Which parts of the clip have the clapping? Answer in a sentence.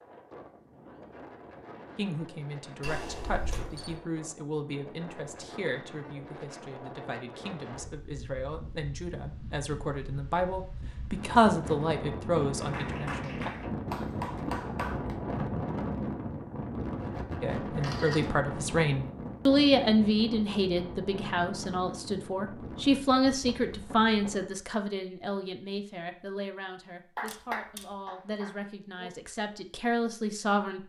The clapping can be heard from 12.6 to 15.2 s and from 27.1 to 29.1 s.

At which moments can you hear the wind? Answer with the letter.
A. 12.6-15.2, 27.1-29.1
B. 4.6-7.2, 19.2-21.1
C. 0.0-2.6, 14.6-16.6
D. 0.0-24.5
D.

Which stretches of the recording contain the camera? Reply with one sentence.
The camera can be heard from 2.8 to 4.0 s, from 17.8 to 18.4 s and from 27.2 to 27.9 s.